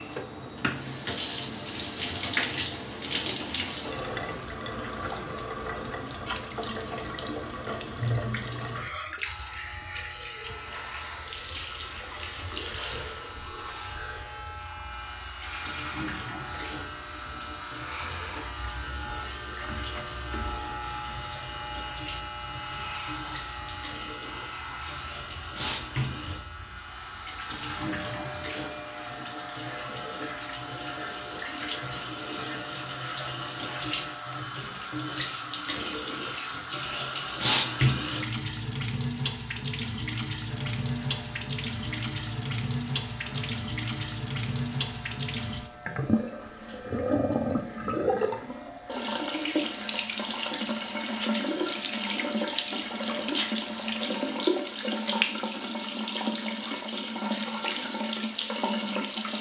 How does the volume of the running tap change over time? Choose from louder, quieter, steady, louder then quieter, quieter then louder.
quieter then louder.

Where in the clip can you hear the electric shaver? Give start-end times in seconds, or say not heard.
9.2-34.5, 40.5-54.0.